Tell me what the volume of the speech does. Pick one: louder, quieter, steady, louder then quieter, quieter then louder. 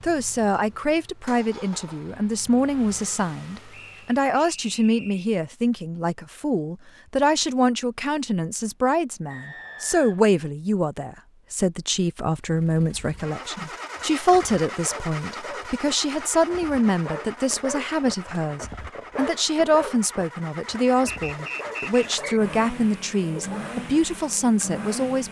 steady.